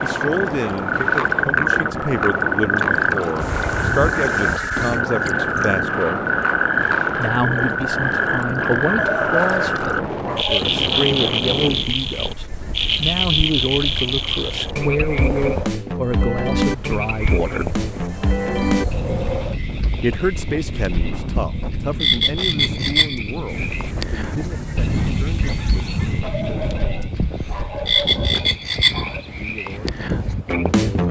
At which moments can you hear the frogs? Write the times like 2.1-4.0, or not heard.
0.0-31.0.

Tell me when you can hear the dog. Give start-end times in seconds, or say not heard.
8.9-10.7, 26.2-29.2.